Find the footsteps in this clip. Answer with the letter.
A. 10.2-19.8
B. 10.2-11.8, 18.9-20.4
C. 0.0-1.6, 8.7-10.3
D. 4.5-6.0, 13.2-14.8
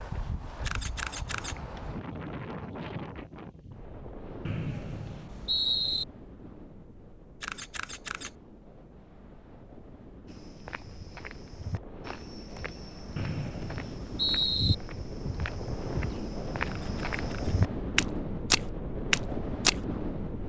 A.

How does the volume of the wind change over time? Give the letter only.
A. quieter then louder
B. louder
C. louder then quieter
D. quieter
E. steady
A.